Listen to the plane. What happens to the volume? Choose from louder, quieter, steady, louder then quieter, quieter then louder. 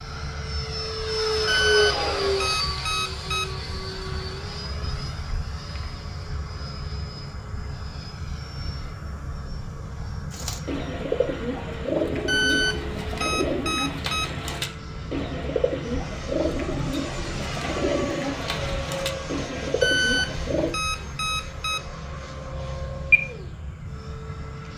quieter then louder.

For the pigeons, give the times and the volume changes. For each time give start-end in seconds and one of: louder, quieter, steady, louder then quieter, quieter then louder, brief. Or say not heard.
10.3-20.7 steady.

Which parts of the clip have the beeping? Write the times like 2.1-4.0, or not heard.
1.4-3.5, 12.2-14.2, 19.8-21.8.